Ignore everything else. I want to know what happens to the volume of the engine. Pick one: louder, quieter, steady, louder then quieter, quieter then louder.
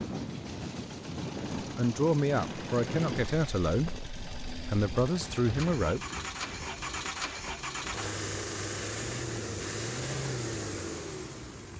louder.